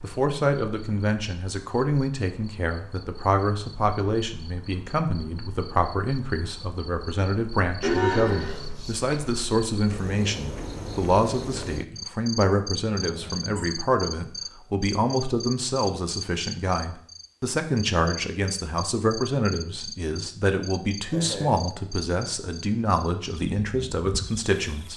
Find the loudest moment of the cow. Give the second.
8 s.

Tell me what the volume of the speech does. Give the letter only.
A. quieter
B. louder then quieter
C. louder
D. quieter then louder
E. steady
E.